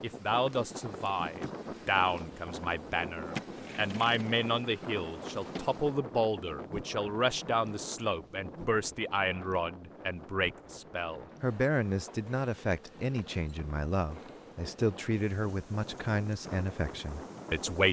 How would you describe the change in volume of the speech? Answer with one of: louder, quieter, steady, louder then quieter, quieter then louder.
steady.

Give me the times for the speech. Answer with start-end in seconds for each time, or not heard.
0.0-17.8.